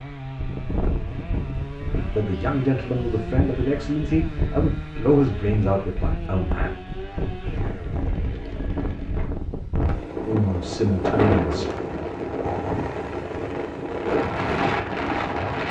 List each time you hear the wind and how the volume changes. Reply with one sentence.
You can hear the wind from 0.2 to 15.6 s, getting louder.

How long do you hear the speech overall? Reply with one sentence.
The speech can be heard for 6 seconds in total.